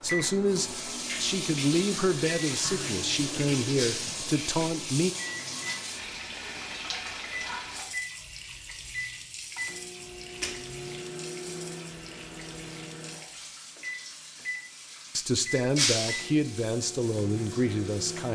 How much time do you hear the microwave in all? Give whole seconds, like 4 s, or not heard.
18 s.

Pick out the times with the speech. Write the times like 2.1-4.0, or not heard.
0.0-5.1, 15.2-18.2.